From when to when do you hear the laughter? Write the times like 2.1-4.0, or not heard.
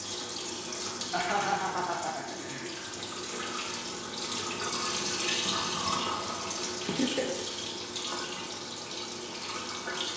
1.1-2.7, 6.8-7.5.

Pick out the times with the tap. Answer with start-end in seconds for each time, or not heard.
0.0-10.1.